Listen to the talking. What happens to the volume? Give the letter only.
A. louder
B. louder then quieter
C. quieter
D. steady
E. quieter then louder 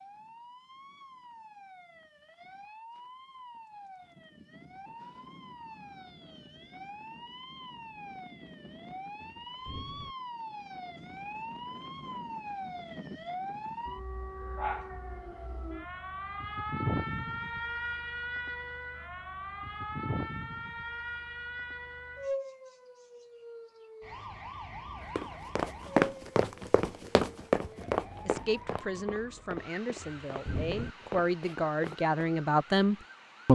A.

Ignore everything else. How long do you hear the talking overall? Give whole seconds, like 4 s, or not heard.
5 s.